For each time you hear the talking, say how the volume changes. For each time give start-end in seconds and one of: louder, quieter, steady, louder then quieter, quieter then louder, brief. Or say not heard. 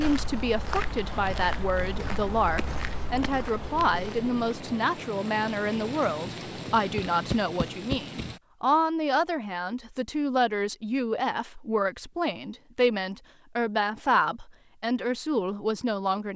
0.0-16.3 steady.